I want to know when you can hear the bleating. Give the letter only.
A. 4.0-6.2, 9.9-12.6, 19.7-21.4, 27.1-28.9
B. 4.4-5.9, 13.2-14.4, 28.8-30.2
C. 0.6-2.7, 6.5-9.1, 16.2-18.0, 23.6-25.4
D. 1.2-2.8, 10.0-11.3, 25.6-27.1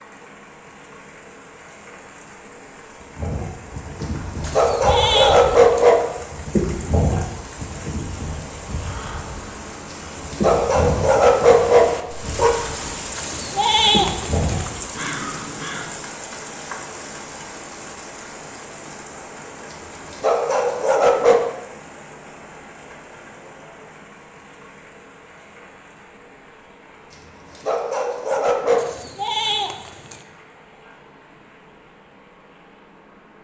B.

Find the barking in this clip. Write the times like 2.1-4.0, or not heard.
4.0-6.2, 9.9-12.6, 19.7-21.4, 27.1-28.9.